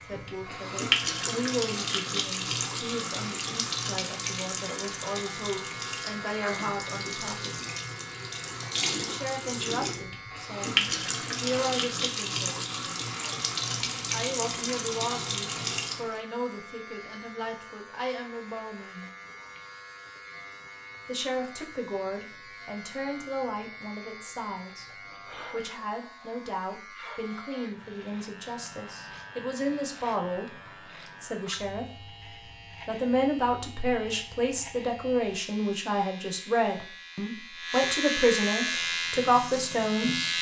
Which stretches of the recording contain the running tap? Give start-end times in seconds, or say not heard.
0.0-16.2, 38.6-40.3.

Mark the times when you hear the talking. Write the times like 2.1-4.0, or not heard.
0.0-7.7, 9.0-12.7, 14.1-19.1, 21.1-30.5, 31.2-31.9, 32.9-40.3.